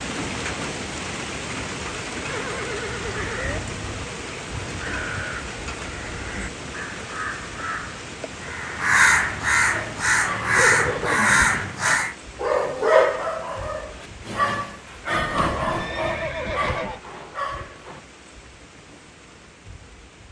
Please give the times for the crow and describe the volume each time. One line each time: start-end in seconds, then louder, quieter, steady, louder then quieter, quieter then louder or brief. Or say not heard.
3.0-12.2 louder.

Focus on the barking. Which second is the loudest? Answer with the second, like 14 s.
13 s.